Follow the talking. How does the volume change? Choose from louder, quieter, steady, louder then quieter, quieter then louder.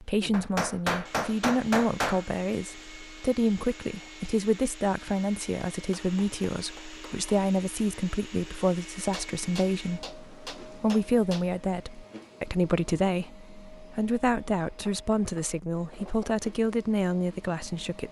steady.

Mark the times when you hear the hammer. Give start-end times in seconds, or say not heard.
0.3-2.2, 5.7-7.3, 9.1-11.4, 14.7-16.4.